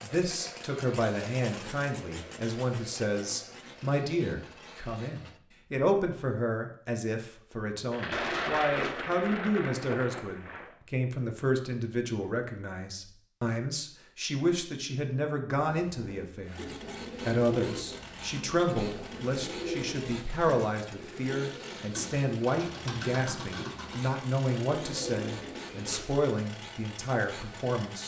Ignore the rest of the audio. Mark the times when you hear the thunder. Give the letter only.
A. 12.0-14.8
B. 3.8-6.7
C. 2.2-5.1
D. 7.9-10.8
D.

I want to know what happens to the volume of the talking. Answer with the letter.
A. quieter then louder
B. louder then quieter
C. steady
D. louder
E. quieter
C.